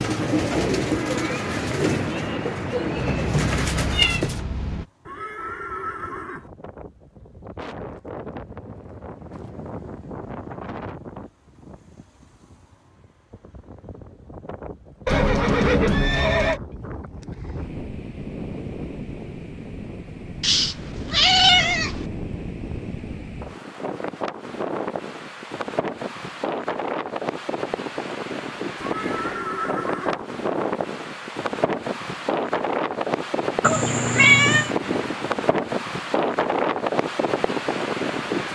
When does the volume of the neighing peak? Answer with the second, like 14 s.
16 s.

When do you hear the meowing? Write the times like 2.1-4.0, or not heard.
3.0-4.8, 20.4-22.1, 33.6-34.7.